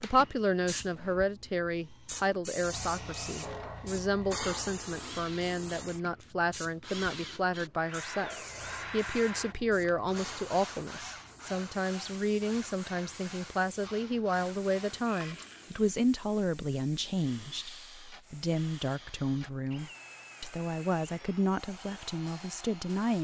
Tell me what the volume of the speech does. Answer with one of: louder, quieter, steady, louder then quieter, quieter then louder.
steady.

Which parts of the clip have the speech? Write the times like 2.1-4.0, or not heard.
0.0-23.1.